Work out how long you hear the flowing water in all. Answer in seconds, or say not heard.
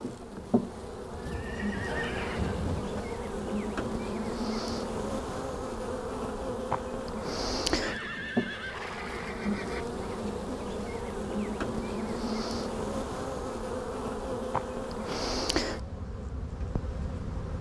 not heard.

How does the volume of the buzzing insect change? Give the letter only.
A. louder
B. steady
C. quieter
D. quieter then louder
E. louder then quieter
B.